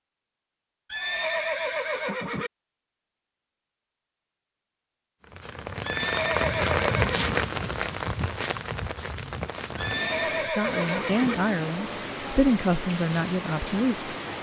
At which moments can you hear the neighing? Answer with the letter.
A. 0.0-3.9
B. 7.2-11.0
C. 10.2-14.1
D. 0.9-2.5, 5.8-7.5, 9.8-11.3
D.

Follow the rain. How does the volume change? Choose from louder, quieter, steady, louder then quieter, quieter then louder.
quieter.